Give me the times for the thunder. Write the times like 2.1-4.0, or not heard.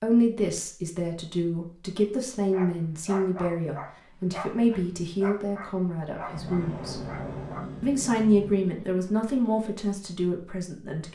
6.1-7.6.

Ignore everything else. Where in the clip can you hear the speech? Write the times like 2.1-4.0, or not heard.
0.0-7.0, 7.8-11.1.